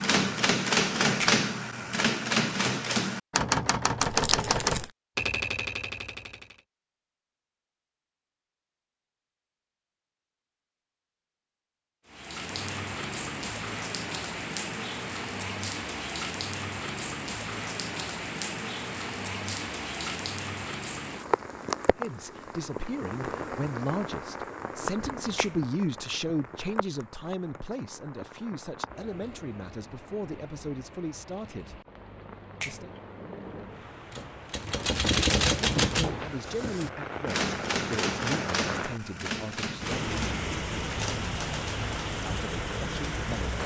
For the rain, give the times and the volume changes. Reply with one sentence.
The rain can be heard from 12.1 to 43.6 s, getting quieter then louder.